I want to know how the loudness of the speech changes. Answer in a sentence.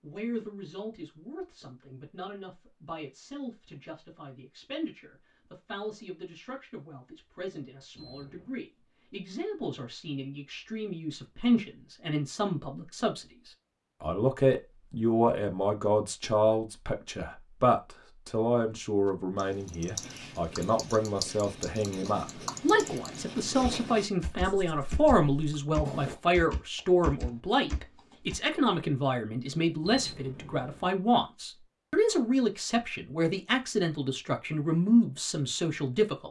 The loudness of the speech goes up.